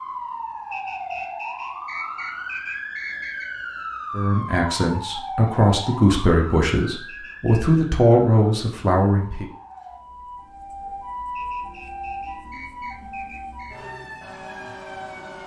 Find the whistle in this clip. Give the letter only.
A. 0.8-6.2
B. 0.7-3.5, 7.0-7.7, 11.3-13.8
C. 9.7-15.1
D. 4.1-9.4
B.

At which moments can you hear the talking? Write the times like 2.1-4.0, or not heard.
4.1-9.4.